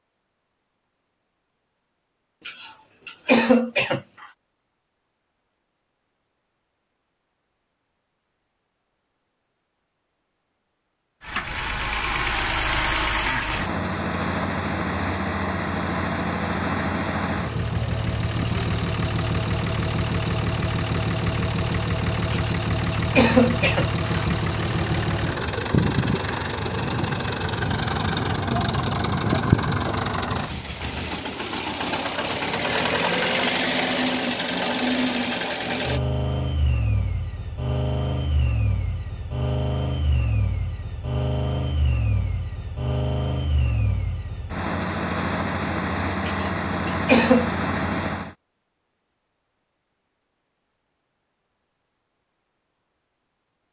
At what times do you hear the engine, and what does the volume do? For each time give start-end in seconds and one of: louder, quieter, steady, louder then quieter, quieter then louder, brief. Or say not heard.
11.2-48.4 steady.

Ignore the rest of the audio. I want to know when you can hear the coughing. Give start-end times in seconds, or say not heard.
2.4-4.2, 22.3-24.3, 46.2-47.5.